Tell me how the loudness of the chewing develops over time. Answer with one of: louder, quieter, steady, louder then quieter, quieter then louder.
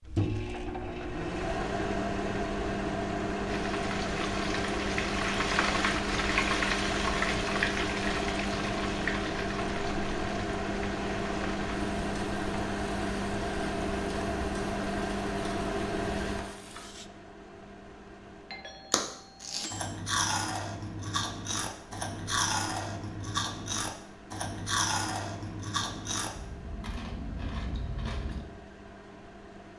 quieter.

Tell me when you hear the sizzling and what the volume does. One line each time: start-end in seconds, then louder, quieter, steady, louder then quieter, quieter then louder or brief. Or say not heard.
3.5-17.1 quieter.